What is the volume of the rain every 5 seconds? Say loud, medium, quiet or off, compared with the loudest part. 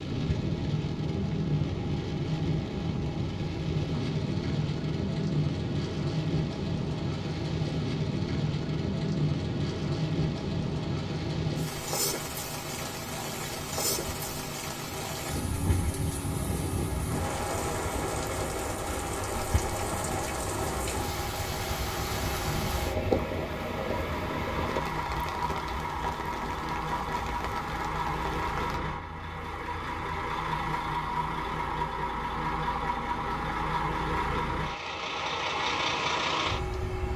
loud, loud, loud, loud, loud, medium, off, off.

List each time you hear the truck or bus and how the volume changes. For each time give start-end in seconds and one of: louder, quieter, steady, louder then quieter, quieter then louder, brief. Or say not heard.
0.1-37.1 louder.